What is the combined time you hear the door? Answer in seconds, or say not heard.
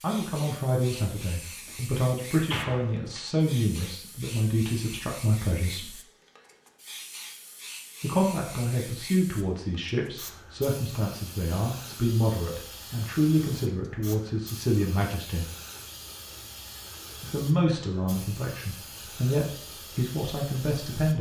2 s.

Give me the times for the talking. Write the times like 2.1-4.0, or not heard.
0.0-6.0, 8.0-15.5, 17.2-21.1.